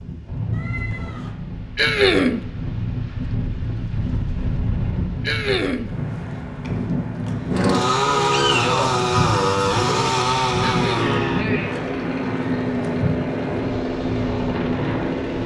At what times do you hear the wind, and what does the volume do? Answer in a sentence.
You can hear the wind from 0.0 to 15.4 s, at a steady volume.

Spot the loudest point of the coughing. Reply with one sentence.
The loudest moment of the coughing is at 2 seconds.